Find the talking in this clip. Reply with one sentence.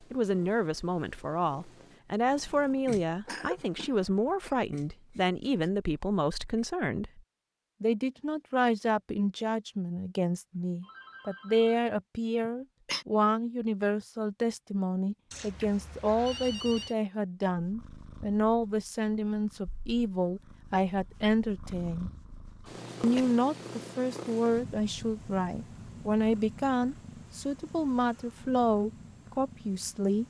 You can hear the talking from 0.1 to 7.2 s, from 7.8 to 22.1 s and from 23.0 to 30.2 s.